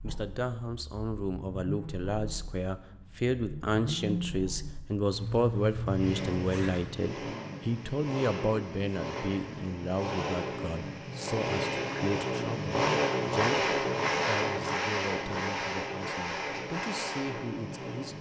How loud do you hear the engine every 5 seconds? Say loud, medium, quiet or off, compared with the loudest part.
medium, medium, loud, medium.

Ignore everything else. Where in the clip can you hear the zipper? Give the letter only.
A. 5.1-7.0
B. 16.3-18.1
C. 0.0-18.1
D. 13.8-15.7
A.